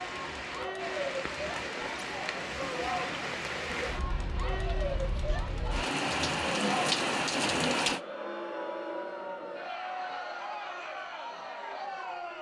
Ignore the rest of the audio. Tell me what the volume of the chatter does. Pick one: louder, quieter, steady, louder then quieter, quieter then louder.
steady.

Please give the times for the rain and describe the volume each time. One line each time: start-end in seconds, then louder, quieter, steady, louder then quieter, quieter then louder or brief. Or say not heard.
0.0-8.0 louder.